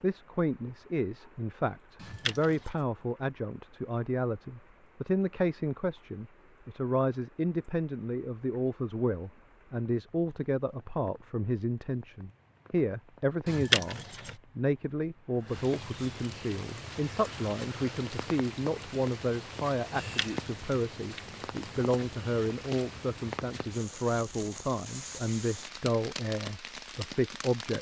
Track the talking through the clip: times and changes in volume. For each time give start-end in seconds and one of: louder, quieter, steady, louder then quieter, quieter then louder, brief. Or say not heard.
0.0-27.7 steady.